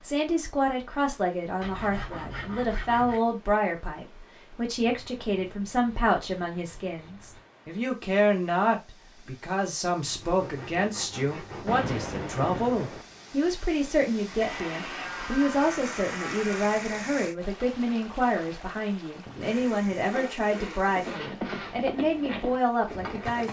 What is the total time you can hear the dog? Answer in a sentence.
You can't hear the dog here.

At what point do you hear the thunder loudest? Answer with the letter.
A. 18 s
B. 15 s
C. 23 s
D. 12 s
D.